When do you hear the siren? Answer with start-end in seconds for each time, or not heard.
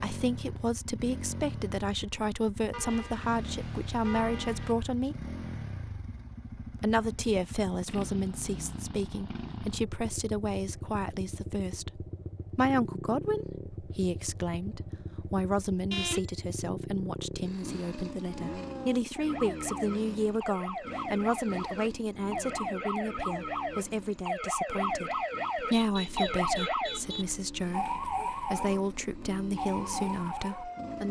18.1-31.0.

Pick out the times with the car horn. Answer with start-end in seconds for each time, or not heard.
2.7-4.8, 15.9-16.4, 25.7-27.2.